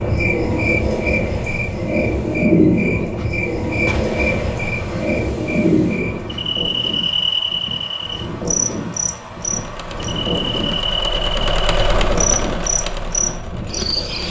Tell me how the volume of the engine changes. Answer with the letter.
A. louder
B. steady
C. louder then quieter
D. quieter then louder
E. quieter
C.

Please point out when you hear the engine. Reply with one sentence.
You can hear the engine from 9.4 to 14.2 s.